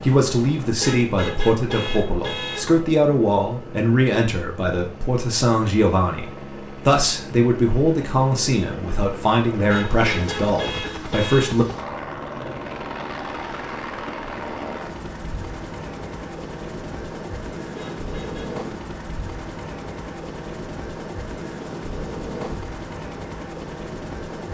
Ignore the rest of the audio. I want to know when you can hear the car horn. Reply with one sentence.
You can hear the car horn from 0.8 to 2.7 s, from 9.7 to 11.5 s and from 17.8 to 18.6 s.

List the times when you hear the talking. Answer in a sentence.
You can hear the talking from 0.0 to 11.7 s.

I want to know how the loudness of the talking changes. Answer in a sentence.
The volume of the talking stays about the same.